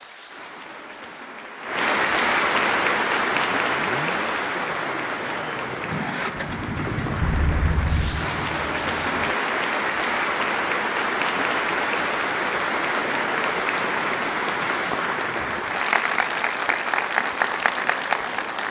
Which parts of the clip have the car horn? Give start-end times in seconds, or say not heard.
7.2-8.2.